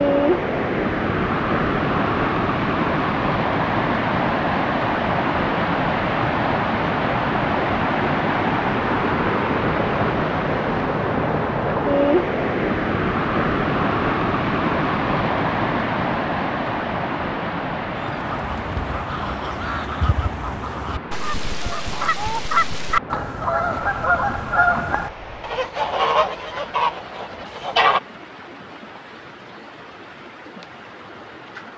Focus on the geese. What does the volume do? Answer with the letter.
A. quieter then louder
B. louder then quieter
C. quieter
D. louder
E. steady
D.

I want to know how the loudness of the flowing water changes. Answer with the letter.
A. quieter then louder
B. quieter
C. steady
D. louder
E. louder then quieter
B.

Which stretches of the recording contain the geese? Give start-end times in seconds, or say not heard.
17.9-28.0.